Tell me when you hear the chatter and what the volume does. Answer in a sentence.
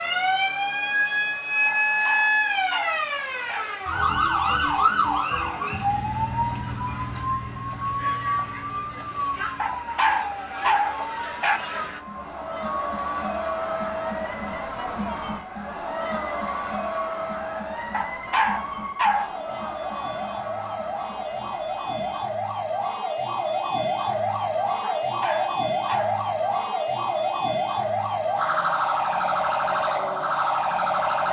The chatter can be heard from 0.0 to 22.2 s, getting louder then quieter.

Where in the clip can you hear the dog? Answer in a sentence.
The dog can be heard from 1.6 to 3.6 s, from 9.6 to 11.6 s, from 17.9 to 19.3 s and from 25.0 to 26.2 s.